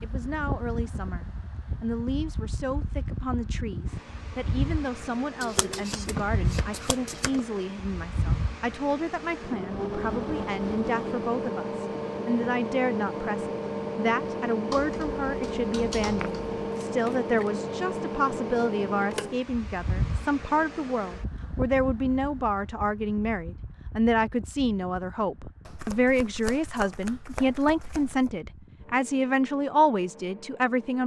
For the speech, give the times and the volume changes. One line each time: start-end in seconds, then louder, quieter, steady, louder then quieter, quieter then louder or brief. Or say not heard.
0.0-31.0 louder.